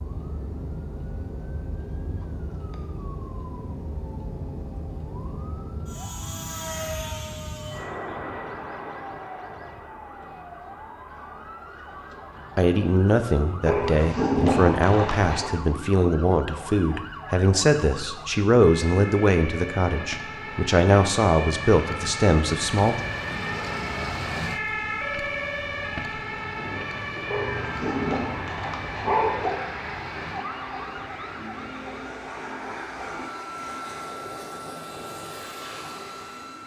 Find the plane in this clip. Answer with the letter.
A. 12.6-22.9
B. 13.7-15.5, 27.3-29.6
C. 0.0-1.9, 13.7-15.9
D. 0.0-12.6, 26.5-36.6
D.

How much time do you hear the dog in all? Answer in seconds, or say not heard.
4 s.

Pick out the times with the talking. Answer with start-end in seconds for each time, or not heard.
12.6-22.9.